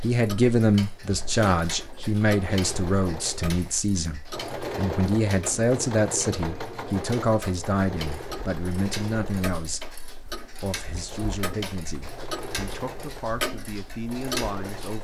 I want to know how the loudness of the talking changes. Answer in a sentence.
The volume of the talking goes down.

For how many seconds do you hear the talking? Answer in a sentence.
The talking can be heard for 14 seconds in total.